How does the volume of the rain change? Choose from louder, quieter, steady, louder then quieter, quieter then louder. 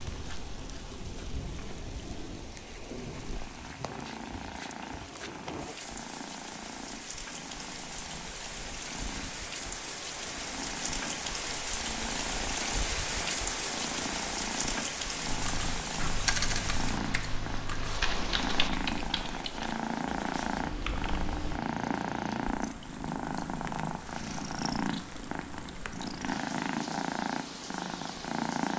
louder then quieter.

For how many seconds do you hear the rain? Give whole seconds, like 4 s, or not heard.
29 s.